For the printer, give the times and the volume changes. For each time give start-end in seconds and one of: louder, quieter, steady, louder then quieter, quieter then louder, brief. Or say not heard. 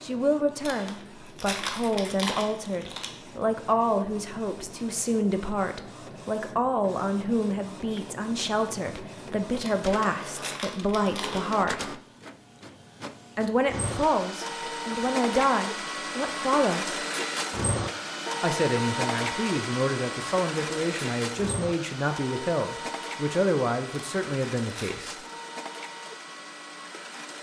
0.0-27.3 louder then quieter.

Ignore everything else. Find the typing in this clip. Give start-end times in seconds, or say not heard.
not heard.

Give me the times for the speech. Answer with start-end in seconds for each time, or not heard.
0.0-11.9, 13.3-17.0, 18.4-25.1.